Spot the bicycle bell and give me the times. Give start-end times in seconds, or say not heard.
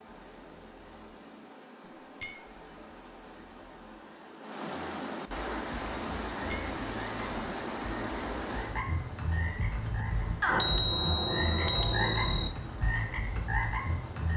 1.9-2.5, 6.3-6.8, 10.4-12.5.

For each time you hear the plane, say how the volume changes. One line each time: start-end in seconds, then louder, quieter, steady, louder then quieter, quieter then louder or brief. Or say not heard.
not heard.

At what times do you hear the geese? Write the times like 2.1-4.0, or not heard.
not heard.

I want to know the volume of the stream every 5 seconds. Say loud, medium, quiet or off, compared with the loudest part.
medium, loud, medium.